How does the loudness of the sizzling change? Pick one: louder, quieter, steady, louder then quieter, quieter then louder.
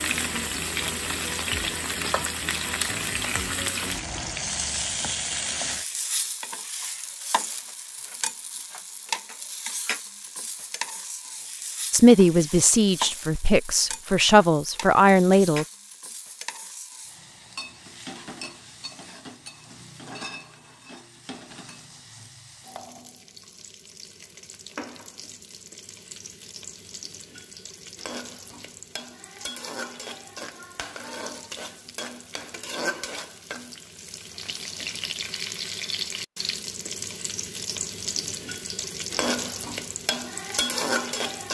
quieter then louder.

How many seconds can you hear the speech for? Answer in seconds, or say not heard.
4 s.